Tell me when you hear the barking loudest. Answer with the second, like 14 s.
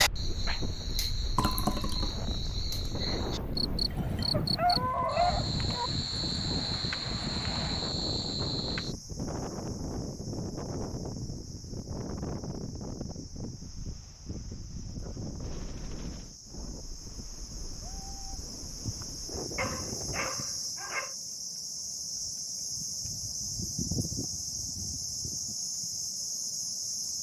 5 s.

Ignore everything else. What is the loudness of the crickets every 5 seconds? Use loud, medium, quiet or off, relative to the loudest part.
loud, loud, quiet, medium, loud, loud.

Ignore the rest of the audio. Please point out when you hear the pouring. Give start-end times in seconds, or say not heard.
1.4-2.1.